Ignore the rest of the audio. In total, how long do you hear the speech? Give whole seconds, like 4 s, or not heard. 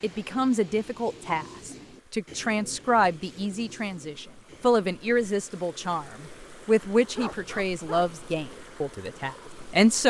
10 s.